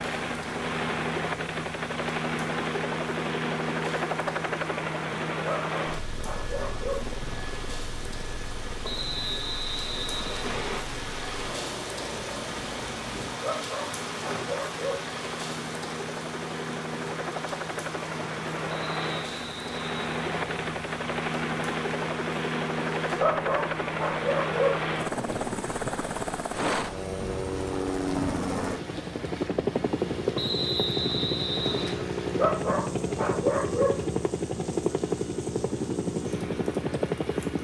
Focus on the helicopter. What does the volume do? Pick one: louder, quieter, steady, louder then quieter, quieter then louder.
quieter then louder.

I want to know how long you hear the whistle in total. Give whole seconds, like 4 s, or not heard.
6 s.